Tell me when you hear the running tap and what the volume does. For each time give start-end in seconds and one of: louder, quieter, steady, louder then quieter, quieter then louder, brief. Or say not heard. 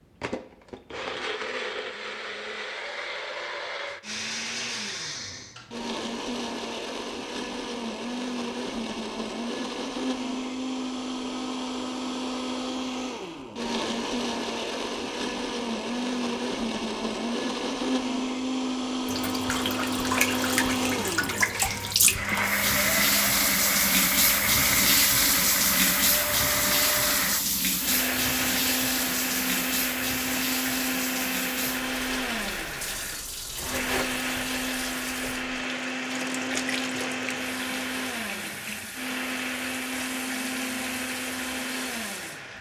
19.1-42.5 quieter.